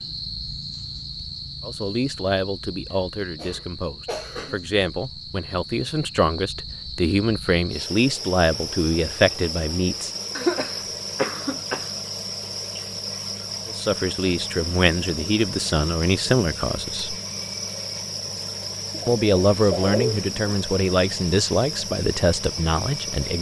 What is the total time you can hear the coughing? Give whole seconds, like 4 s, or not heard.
5 s.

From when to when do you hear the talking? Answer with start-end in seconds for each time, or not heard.
1.6-10.1, 13.7-17.1, 19.1-23.3.